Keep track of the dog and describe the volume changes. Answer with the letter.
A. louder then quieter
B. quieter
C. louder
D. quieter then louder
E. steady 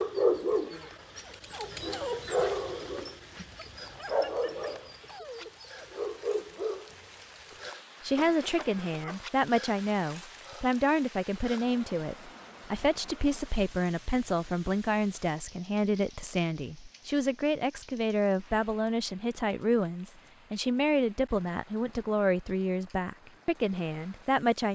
D.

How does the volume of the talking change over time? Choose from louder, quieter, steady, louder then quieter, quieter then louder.
steady.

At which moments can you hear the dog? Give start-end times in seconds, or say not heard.
0.0-7.7.